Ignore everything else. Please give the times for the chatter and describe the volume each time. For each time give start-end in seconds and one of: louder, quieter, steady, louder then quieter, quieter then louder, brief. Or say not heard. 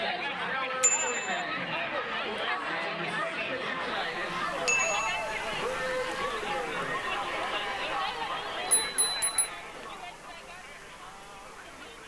0.0-12.0 quieter.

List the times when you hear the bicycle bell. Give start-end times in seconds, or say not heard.
0.8-1.4, 4.7-5.2, 8.7-9.5.